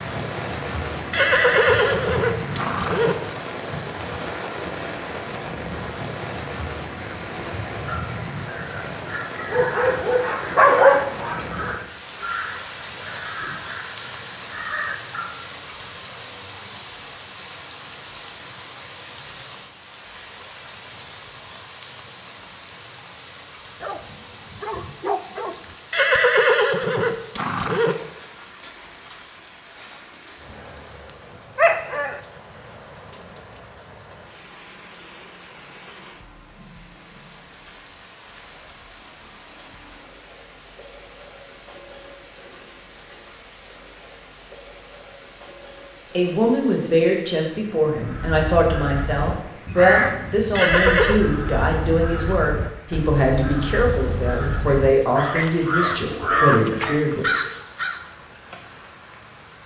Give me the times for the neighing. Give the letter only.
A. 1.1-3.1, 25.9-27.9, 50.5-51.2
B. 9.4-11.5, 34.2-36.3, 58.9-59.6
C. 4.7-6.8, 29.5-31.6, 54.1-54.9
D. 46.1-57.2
A.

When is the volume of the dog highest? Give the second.
11 s.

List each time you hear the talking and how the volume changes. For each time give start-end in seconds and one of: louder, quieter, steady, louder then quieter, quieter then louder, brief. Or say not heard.
46.1-57.2 steady.